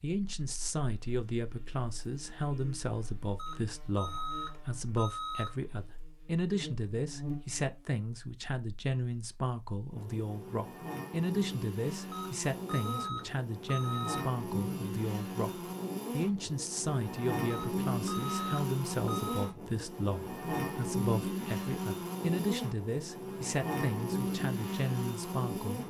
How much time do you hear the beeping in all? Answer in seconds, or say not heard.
6 s.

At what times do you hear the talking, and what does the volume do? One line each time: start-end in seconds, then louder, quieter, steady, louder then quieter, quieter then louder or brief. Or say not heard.
0.0-25.8 steady.